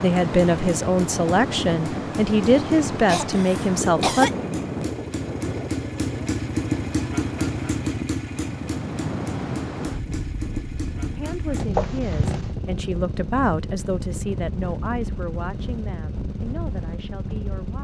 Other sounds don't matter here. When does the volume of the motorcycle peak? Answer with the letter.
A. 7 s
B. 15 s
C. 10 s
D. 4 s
A.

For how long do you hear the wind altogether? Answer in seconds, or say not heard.
18 s.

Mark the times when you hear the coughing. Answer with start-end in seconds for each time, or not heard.
3.0-4.3, 11.8-12.5.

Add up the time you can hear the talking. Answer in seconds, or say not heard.
11 s.